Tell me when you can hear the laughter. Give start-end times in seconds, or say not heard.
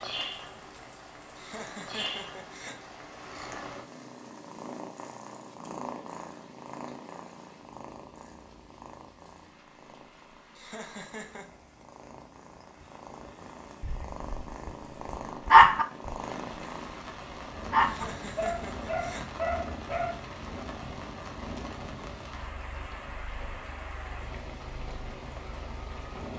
1.4-3.0, 10.6-11.6, 17.8-19.3.